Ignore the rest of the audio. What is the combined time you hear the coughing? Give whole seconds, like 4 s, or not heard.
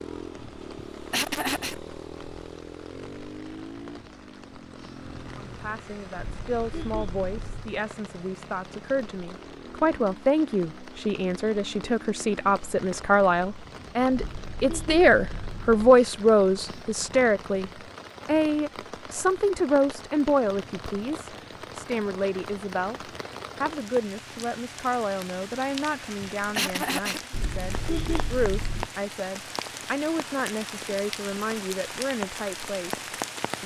2 s.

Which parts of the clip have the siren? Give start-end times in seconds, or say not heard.
not heard.